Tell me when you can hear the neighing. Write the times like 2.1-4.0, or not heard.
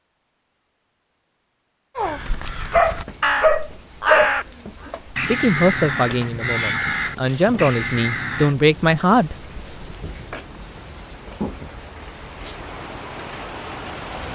not heard.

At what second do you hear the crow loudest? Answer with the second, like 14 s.
4 s.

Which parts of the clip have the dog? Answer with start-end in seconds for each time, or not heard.
2.7-4.3.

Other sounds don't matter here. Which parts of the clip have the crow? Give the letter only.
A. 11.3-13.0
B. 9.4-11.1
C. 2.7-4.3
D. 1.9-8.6
D.